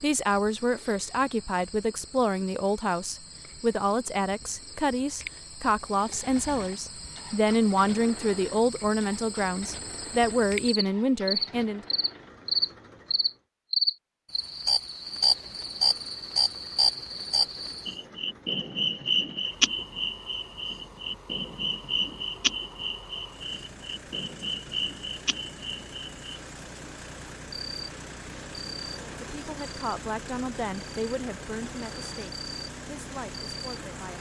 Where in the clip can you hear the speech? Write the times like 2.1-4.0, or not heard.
0.0-11.8, 28.9-34.1.